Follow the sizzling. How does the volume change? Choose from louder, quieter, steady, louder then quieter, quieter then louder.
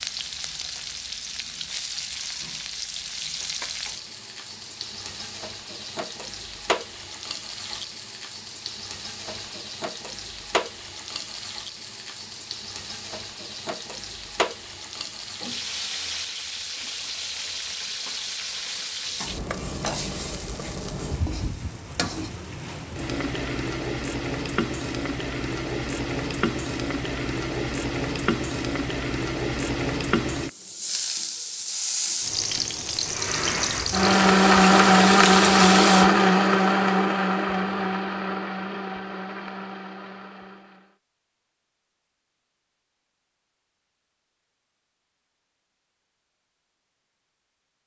louder.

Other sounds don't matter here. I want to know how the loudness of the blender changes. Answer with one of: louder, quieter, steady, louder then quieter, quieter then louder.
quieter.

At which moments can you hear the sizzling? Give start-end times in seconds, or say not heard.
0.0-36.0.